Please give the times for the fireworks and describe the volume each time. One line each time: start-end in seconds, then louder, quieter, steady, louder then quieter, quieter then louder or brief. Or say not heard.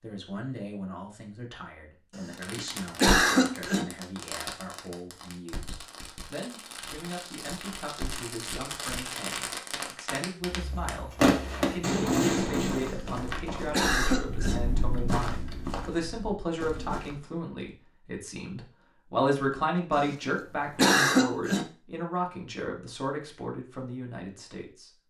2.3-12.9 quieter then louder.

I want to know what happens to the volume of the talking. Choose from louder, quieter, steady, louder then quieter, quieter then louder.
louder.